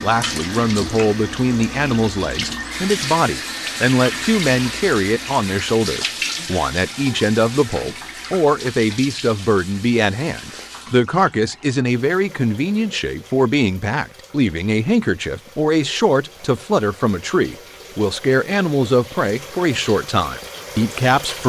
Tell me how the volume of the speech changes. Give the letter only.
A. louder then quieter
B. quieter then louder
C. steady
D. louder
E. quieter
C.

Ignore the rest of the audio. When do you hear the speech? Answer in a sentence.
You can hear the speech from 0.0 to 21.4 s.